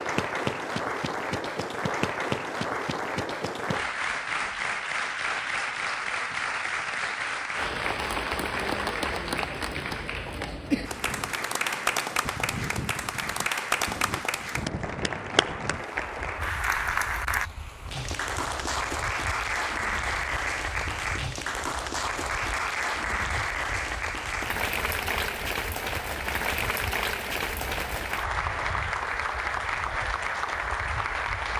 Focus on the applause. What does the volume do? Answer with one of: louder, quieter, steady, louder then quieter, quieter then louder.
steady.